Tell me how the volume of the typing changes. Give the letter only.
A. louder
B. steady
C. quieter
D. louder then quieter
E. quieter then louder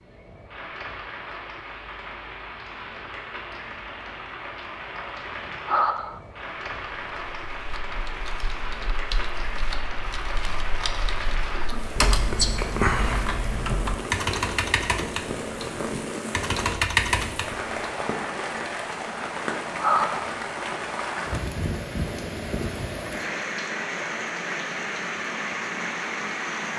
A.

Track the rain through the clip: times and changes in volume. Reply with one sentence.
You can hear the rain from 0.0 to 26.7 s, getting louder.